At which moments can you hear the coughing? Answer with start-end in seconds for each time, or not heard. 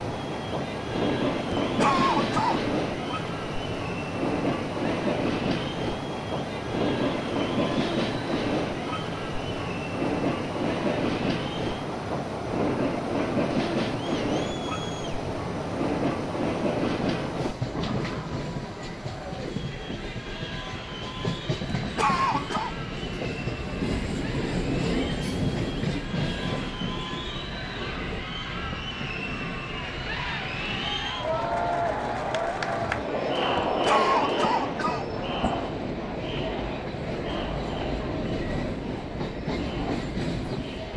1.5-2.6, 21.8-22.8, 33.5-35.5.